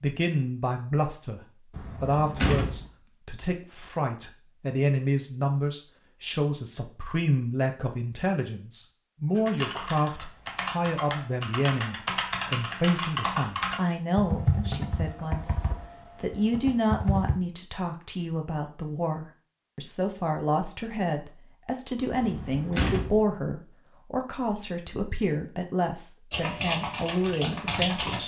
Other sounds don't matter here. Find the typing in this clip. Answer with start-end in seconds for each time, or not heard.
9.3-17.4, 26.3-28.2.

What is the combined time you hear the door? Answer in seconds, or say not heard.
2 s.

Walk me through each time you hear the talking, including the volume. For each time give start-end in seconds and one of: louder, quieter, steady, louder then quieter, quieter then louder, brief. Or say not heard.
0.0-28.2 steady.